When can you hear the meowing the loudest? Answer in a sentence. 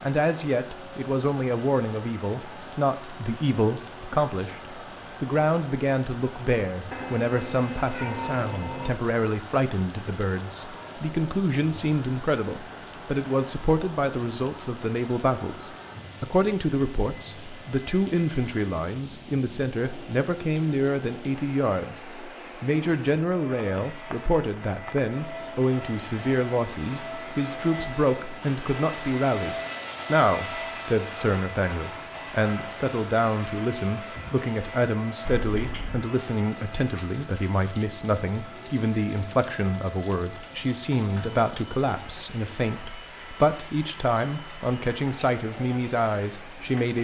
The volume of the meowing peaks at 8 seconds.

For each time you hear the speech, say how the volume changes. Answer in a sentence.
The speech can be heard from 0.0 to 46.9 s, at a steady volume.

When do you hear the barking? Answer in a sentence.
The barking can't be heard in this clip.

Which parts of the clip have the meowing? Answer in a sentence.
The meowing can be heard from 6.9 to 8.9 s and from 35.2 to 36.0 s.